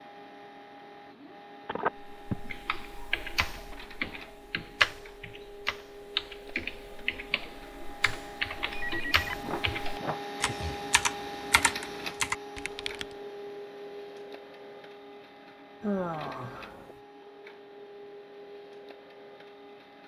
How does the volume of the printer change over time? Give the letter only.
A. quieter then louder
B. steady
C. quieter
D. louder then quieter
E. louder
D.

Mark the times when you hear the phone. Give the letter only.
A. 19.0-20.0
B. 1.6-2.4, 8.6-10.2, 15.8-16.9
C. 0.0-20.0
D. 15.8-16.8
B.